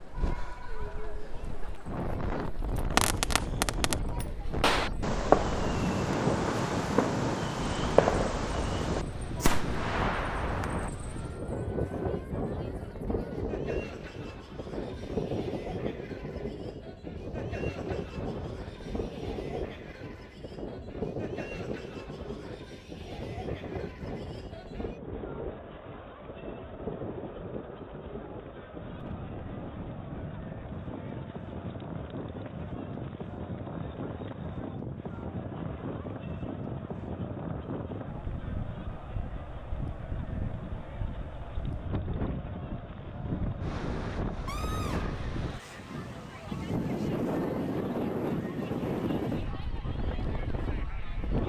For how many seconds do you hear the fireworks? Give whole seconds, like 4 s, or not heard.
8 s.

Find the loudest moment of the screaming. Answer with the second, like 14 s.
45 s.